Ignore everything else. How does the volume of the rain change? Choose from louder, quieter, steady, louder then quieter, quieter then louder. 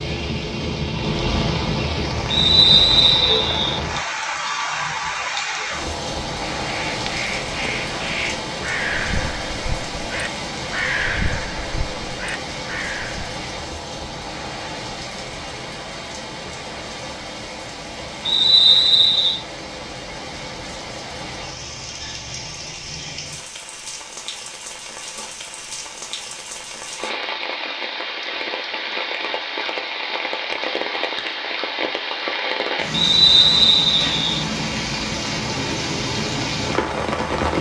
quieter then louder.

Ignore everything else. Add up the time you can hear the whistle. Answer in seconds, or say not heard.
4 s.